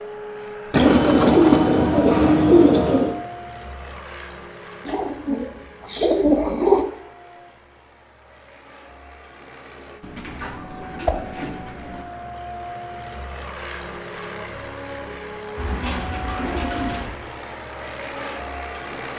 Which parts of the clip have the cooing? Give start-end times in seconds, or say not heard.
0.7-3.1, 4.8-6.8, 10.0-12.0, 15.6-17.2.